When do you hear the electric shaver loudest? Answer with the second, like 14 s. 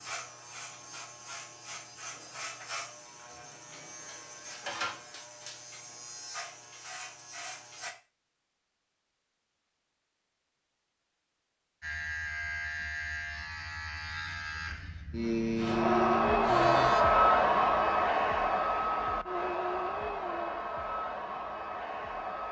16 s.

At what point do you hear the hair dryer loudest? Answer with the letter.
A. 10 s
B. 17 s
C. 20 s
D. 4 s
B.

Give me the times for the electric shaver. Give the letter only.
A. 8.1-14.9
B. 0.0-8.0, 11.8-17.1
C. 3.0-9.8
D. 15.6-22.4
B.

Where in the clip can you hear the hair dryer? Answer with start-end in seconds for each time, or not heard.
15.6-22.4.